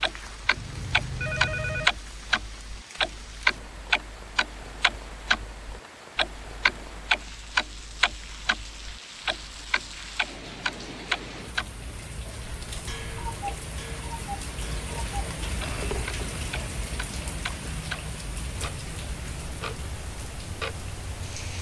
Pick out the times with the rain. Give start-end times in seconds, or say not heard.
0.0-21.5.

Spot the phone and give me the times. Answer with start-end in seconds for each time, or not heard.
0.6-1.9, 15.6-16.3.